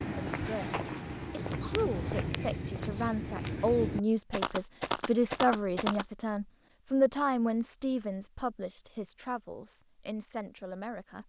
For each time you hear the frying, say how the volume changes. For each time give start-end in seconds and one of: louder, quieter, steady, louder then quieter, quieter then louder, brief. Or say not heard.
not heard.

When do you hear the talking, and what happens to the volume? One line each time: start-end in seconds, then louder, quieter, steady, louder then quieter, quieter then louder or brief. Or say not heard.
0.3-11.2 louder then quieter.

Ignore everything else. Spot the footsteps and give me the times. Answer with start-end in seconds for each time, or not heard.
0.0-6.0.